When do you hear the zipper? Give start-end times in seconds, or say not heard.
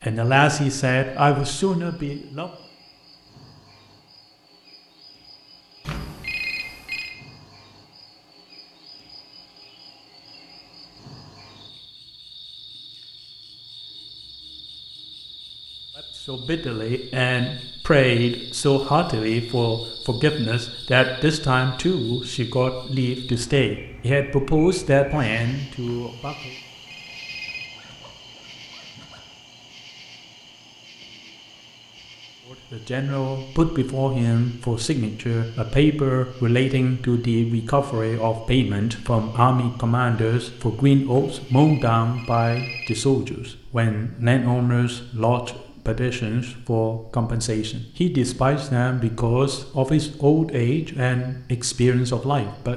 27.6-29.2.